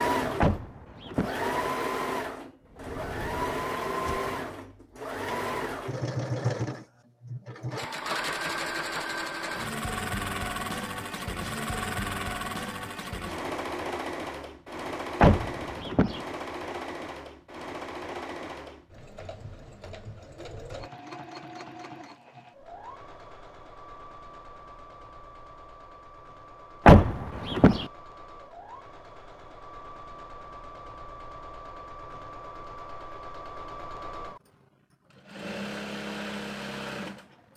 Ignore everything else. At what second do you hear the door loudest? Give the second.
27 s.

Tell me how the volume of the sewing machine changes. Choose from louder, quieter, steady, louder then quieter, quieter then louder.
quieter then louder.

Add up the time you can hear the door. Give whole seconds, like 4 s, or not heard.
3 s.